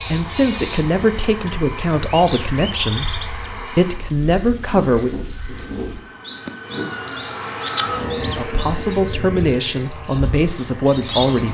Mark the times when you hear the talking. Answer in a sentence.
You can hear the talking from 0.0 to 5.2 s and from 8.3 to 11.4 s.